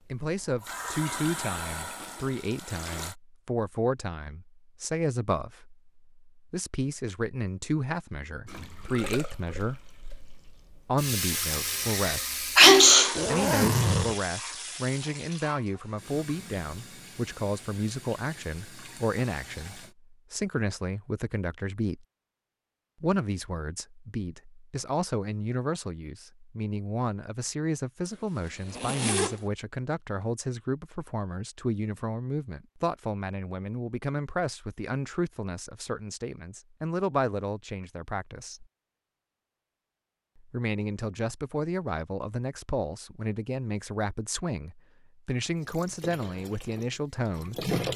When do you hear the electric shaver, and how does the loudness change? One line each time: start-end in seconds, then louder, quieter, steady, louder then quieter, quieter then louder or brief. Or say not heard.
not heard.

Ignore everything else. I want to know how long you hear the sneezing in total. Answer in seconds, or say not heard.
2 s.